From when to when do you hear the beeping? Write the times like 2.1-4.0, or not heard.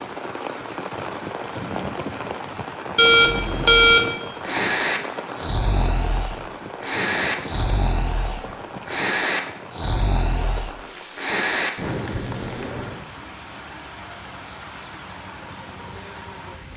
3.0-4.1.